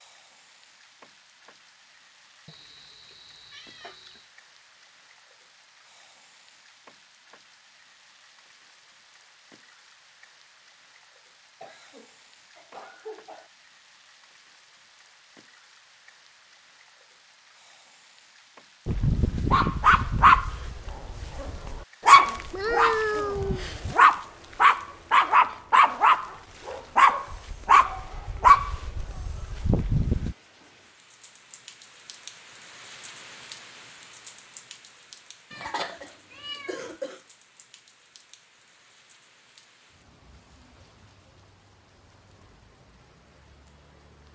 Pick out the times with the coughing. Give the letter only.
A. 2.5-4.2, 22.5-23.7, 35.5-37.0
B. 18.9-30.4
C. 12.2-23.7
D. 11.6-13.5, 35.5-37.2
D.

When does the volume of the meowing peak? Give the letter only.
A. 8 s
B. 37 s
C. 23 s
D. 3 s
C.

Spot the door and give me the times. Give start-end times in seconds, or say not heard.
not heard.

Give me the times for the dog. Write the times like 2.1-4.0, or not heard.
18.9-30.4.